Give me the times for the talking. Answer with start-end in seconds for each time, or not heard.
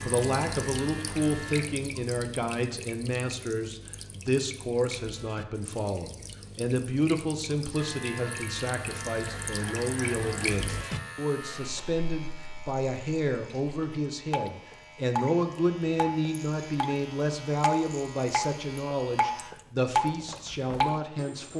0.0-21.5.